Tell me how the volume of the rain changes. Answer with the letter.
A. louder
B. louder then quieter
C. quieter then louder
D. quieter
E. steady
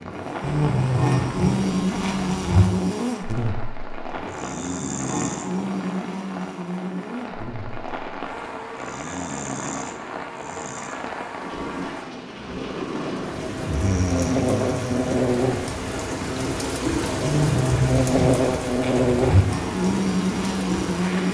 A.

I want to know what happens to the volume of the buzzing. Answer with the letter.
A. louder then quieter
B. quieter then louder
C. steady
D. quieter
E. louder
B.